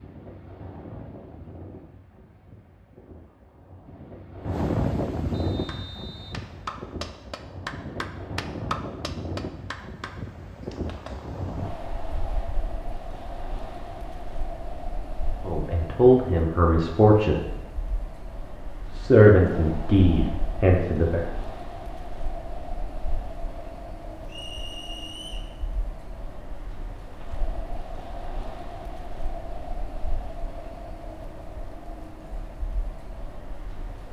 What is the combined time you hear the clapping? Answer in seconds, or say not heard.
6 s.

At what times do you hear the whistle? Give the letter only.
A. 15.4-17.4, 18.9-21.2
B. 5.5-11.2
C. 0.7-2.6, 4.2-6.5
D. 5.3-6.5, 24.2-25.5
D.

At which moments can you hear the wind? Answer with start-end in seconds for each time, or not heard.
0.0-34.0.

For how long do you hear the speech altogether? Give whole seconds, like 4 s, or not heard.
4 s.